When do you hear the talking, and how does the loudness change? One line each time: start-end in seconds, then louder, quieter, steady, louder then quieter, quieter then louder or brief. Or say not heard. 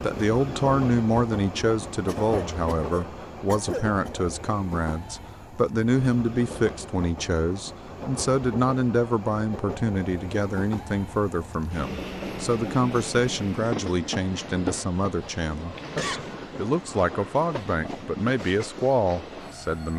0.0-19.9 steady.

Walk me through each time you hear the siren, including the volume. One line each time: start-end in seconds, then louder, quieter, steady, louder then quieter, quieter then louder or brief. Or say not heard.
not heard.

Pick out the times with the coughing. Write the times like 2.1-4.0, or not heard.
2.0-4.1, 15.8-16.2.